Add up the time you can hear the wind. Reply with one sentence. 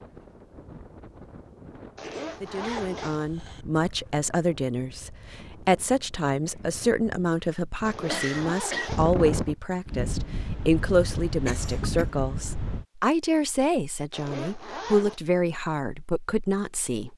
You can hear the wind for 13 seconds altogether.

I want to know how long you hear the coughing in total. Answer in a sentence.
You can hear the coughing for 3 seconds altogether.